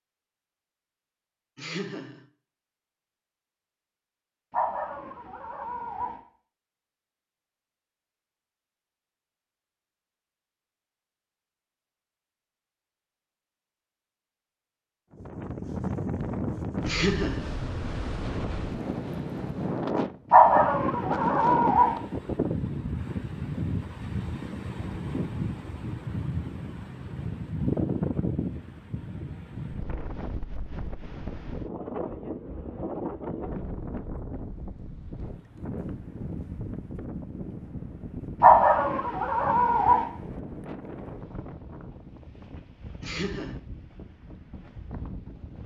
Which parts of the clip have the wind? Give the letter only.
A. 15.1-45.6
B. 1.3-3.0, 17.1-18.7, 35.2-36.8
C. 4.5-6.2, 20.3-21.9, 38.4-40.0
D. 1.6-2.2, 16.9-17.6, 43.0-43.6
A.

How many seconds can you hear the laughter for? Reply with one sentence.
The laughter can be heard for 2 seconds in total.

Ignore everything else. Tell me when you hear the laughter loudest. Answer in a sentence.
The loudest moment of the laughter is at 17 seconds.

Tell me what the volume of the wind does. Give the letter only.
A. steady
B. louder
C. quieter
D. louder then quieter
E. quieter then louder
C.